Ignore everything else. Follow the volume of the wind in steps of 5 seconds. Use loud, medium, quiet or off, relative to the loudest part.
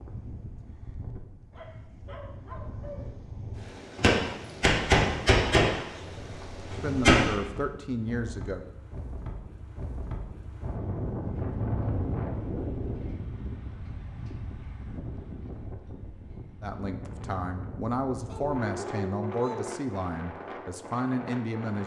medium, medium, loud, medium, medium.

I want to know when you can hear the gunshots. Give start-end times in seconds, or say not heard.
4.0-7.3.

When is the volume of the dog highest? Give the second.
19 s.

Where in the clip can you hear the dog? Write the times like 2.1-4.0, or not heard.
1.5-3.1, 18.2-19.8.